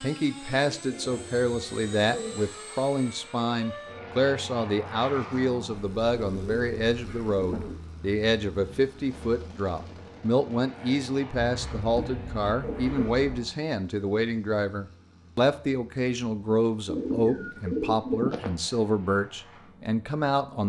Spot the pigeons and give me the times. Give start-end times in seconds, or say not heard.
0.6-2.4, 5.7-7.8, 11.3-13.2, 16.9-18.6.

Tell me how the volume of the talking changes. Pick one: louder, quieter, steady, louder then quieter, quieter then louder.
steady.